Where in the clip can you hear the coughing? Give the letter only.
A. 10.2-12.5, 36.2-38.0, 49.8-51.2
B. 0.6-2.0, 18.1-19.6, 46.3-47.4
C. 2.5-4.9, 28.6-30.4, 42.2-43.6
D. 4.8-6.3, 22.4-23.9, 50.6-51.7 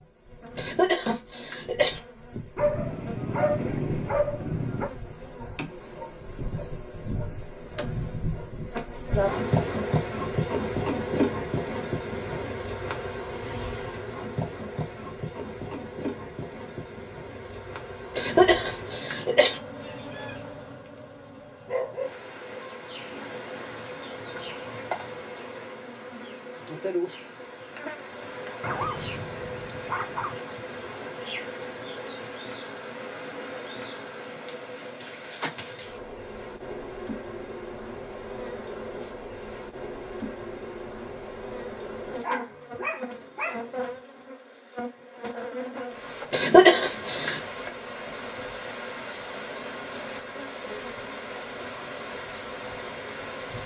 B.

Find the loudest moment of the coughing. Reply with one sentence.
The loudest moment of the coughing is at 47 seconds.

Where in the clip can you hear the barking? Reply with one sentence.
The barking can be heard from 2.5 to 4.9 s, from 28.6 to 30.4 s and from 42.2 to 43.6 s.